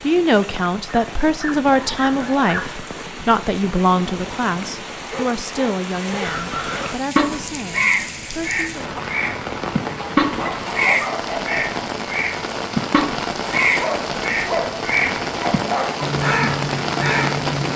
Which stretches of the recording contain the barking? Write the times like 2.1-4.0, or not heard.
0.8-2.7, 5.0-6.8, 10.2-11.8, 13.8-16.1.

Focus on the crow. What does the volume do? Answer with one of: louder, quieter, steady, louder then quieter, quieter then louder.
steady.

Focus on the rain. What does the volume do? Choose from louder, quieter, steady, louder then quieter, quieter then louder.
louder.